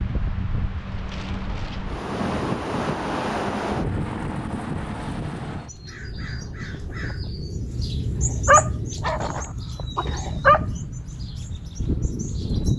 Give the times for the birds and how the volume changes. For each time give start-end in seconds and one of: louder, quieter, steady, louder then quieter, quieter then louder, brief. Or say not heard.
5.5-12.7 louder then quieter.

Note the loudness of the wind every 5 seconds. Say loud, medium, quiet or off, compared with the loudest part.
loud, medium, loud.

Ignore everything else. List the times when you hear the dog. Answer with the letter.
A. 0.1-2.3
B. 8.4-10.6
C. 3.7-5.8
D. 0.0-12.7
B.